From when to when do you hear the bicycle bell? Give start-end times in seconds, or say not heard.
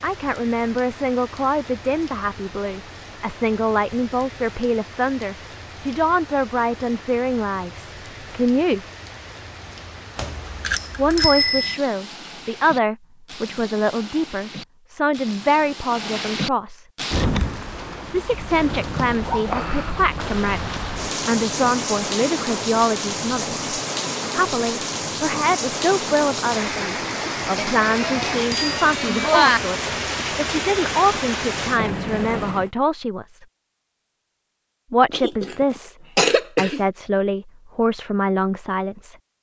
10.2-11.8, 27.6-29.6.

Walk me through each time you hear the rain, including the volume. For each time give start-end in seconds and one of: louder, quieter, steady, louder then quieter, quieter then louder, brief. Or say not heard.
0.0-32.7 louder.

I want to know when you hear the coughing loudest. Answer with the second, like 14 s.
36 s.